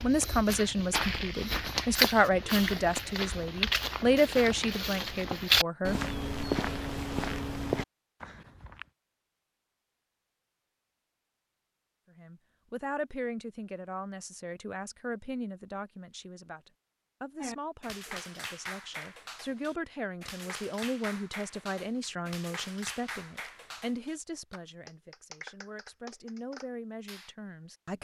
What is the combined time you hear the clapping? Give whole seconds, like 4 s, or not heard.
10 s.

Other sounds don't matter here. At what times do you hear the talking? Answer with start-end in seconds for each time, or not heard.
0.0-6.0, 12.2-27.9.